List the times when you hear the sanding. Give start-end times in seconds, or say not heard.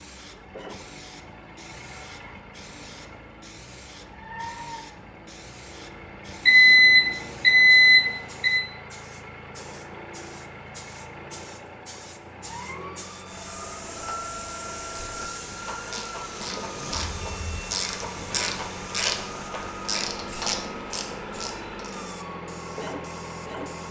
not heard.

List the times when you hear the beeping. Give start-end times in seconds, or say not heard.
6.5-8.6, 16.9-17.8.